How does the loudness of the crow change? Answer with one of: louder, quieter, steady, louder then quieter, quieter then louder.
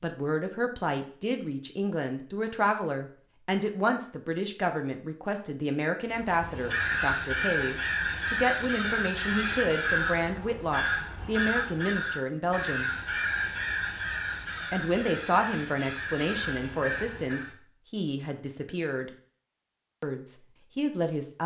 quieter.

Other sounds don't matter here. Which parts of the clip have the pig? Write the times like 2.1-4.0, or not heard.
not heard.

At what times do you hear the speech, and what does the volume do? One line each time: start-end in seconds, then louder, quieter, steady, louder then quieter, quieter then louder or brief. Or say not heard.
0.0-12.9 steady
14.7-19.1 quieter
20.0-21.4 brief.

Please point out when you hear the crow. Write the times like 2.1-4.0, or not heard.
6.2-17.6.